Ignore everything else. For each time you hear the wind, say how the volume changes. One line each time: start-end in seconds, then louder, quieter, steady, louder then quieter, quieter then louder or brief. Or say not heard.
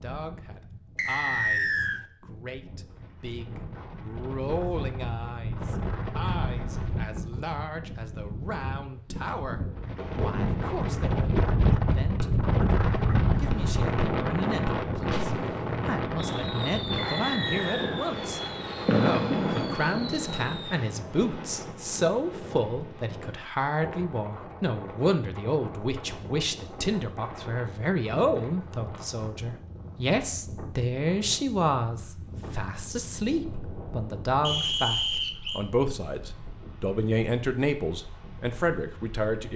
0.0-39.5 louder then quieter.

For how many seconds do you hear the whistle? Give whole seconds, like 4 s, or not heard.
3 s.